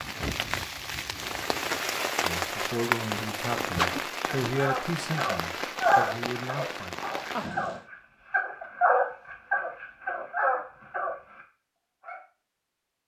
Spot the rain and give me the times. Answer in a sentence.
The rain can be heard from 0.0 to 7.8 s.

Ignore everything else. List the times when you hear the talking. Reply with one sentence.
You can hear the talking from 2.2 to 7.0 s.